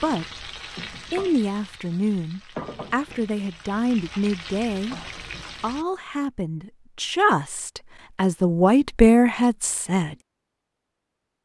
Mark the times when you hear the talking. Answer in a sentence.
You can hear the talking from 0.0 to 0.5 s and from 1.1 to 10.2 s.